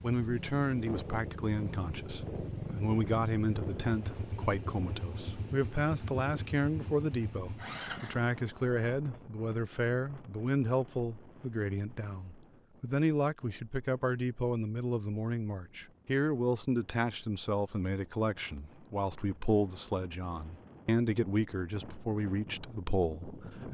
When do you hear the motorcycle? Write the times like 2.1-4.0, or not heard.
0.2-8.2.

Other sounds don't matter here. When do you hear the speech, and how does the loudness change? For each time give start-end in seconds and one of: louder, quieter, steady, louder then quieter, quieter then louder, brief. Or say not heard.
0.0-23.6 steady.